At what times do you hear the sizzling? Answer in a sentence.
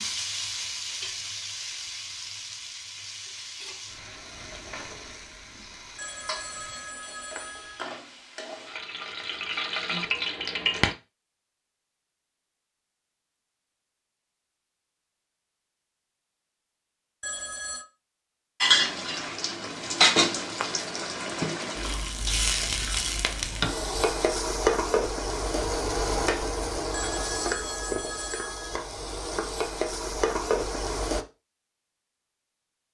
You can hear the sizzling from 0.0 to 10.9 s and from 18.6 to 31.2 s.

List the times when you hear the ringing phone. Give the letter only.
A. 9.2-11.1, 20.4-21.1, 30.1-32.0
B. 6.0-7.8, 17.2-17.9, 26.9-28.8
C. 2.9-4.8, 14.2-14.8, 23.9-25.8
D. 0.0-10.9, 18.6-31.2
B.